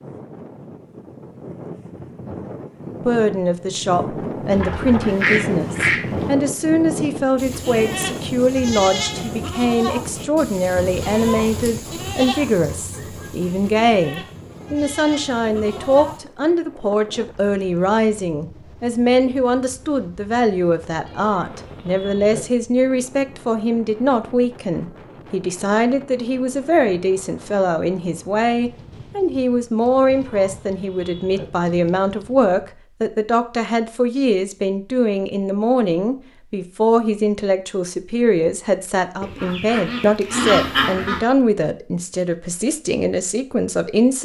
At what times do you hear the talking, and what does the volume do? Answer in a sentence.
You can hear the talking from 3.0 to 44.2 s, at a steady volume.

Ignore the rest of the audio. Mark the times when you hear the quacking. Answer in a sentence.
The quacking can be heard from 4.5 to 6.3 s and from 39.2 to 41.2 s.